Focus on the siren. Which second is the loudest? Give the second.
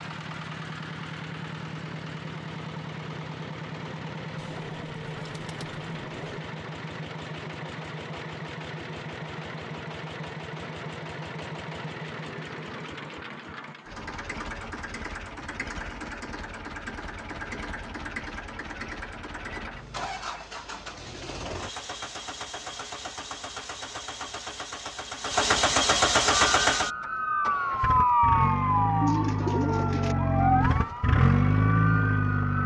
28 s.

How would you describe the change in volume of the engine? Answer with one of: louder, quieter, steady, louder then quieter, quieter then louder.
louder.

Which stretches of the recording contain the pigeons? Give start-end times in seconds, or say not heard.
4.3-6.4, 29.0-30.1.